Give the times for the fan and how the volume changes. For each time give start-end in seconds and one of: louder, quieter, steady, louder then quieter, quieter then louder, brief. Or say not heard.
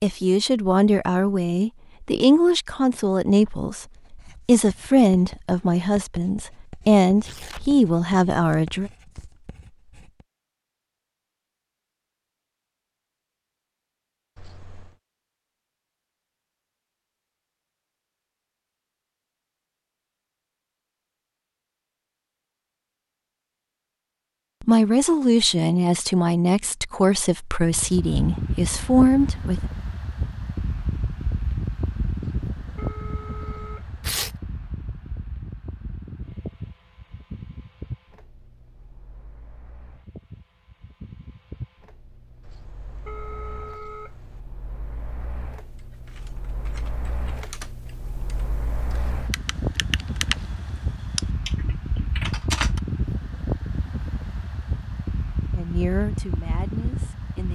27.6-57.5 quieter then louder.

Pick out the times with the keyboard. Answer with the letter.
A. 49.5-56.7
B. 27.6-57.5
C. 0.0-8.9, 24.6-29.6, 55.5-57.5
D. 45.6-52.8
D.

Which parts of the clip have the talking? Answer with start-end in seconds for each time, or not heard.
0.0-8.9, 24.6-29.6, 55.5-57.5.